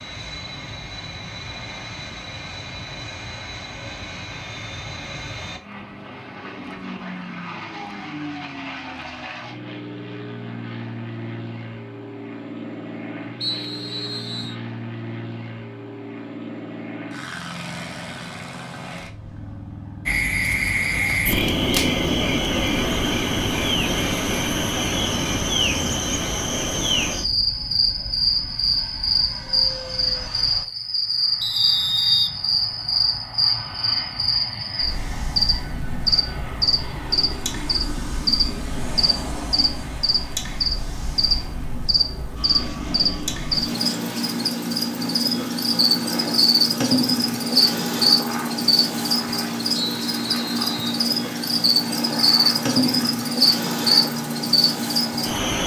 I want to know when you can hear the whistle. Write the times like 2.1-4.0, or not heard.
13.4-14.6, 31.4-32.8, 49.8-51.0.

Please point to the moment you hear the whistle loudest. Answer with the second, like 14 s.
32 s.